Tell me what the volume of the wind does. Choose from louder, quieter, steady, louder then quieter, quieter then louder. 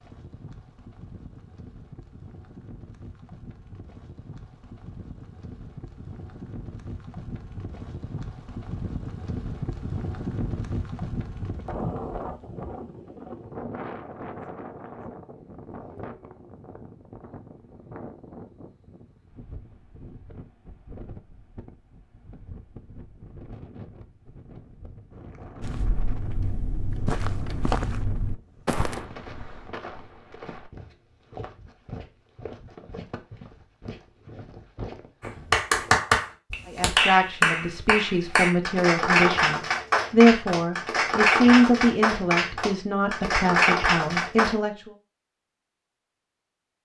louder then quieter.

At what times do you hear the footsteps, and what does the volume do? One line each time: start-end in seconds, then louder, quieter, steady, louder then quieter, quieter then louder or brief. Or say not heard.
25.6-36.0 quieter.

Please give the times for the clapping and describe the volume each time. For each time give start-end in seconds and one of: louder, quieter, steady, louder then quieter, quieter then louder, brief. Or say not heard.
35.2-44.5 steady.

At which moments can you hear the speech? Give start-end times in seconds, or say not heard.
36.6-44.9.